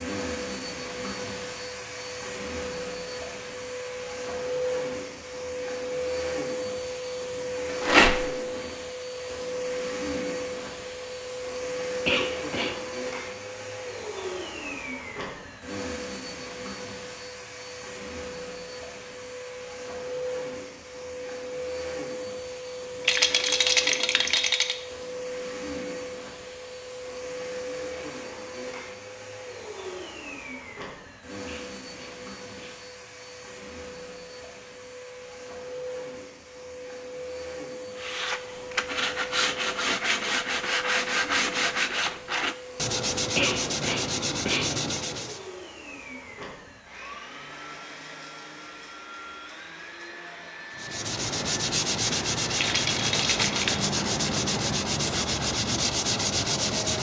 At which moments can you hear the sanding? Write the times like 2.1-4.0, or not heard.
38.0-45.5, 50.8-56.9.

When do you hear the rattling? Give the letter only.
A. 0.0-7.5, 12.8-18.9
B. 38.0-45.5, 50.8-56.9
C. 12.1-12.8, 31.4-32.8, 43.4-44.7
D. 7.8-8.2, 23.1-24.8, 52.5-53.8
D.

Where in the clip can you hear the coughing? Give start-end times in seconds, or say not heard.
12.1-12.8, 31.4-32.8, 43.4-44.7.